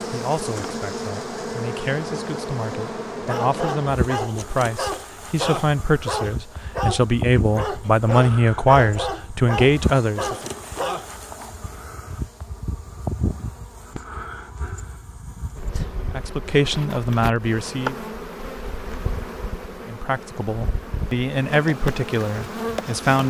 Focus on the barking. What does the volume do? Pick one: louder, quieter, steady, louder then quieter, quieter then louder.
steady.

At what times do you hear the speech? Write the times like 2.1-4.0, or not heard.
0.1-10.5, 16.0-17.9, 19.9-23.2.